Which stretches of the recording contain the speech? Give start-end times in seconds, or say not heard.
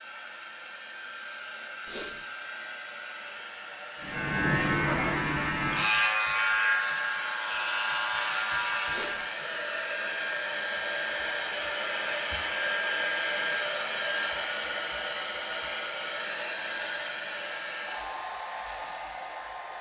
not heard.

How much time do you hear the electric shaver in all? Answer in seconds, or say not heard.
5 s.